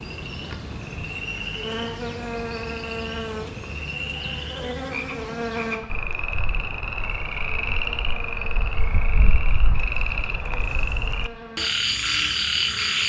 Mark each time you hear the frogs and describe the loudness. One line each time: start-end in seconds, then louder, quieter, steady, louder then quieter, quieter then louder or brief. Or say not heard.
0.0-13.0 louder.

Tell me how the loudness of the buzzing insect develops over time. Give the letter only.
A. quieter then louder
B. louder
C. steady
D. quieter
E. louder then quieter
D.